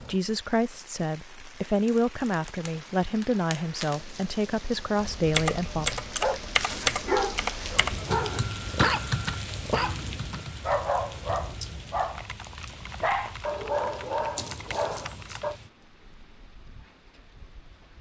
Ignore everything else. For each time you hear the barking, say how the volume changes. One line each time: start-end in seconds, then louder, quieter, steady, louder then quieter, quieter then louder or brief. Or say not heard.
6.2-15.6 steady.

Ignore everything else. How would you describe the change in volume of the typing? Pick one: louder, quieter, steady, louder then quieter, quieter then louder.
quieter.